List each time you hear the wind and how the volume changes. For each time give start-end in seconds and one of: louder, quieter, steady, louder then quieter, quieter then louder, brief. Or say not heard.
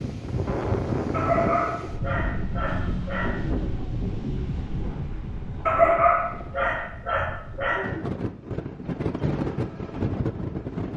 0.0-10.9 quieter then louder.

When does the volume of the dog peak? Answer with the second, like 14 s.
6 s.